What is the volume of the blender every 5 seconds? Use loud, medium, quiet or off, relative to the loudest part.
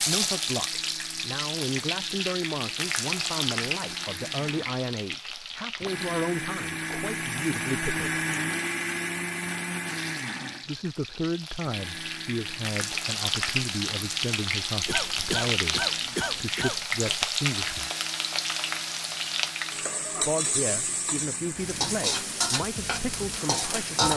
quiet, loud, medium, quiet, quiet.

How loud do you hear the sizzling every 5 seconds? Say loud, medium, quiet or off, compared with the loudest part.
loud, medium, loud, loud, loud.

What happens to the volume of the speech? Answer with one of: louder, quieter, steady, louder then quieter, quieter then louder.
steady.